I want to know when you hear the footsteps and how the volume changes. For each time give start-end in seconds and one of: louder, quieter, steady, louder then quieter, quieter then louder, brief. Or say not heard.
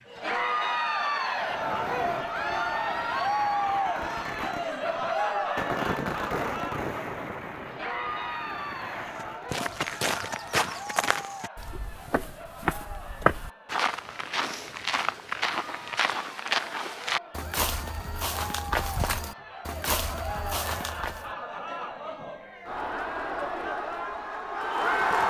9.2-21.3 steady.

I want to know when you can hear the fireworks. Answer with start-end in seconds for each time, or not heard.
1.3-9.7.